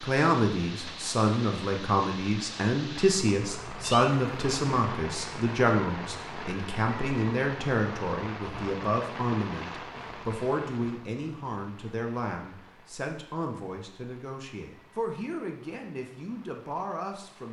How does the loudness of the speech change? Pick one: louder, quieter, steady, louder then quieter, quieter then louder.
quieter.